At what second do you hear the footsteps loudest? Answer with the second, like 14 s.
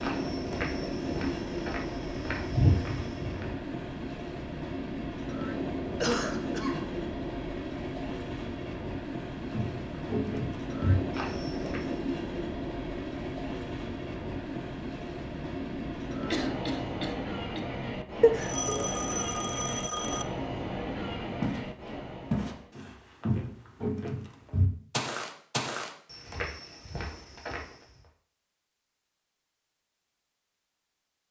3 s.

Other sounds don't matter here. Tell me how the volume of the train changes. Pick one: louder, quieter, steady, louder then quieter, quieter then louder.
steady.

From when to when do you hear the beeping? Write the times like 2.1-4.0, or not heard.
18.2-20.2.